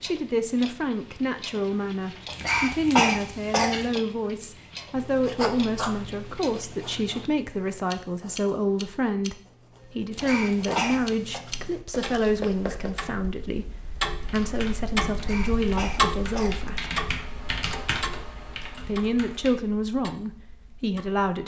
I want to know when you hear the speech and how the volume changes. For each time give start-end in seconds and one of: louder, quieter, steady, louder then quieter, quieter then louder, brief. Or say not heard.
0.0-16.9 steady
18.9-21.4 brief.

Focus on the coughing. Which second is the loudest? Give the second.
3 s.